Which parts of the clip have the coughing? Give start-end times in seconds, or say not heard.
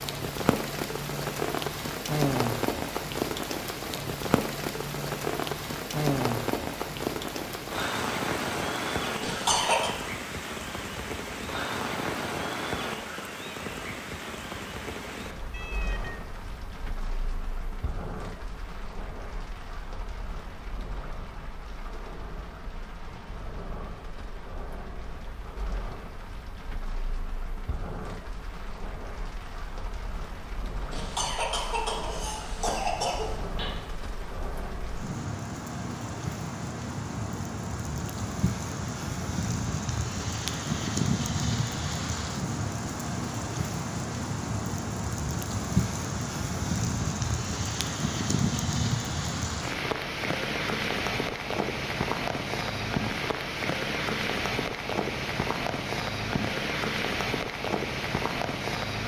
9.2-9.9, 30.9-33.7.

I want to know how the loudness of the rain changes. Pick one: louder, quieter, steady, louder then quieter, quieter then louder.
quieter then louder.